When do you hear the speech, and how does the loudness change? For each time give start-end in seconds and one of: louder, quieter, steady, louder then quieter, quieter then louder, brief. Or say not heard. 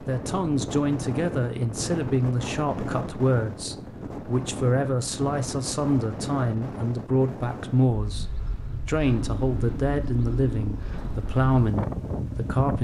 0.0-12.7 steady.